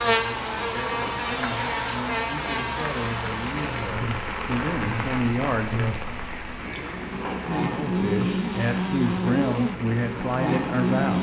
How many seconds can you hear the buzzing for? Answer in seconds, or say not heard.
11 s.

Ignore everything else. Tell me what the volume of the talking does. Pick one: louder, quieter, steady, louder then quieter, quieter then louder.
louder.